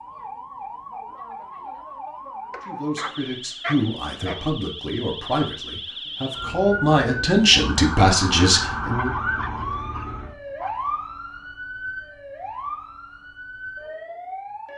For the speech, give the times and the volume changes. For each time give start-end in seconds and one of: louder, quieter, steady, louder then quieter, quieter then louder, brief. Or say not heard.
2.6-9.1 louder.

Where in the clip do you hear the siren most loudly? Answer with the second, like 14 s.
9 s.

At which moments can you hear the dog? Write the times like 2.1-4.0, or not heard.
2.5-4.5, 8.8-10.8.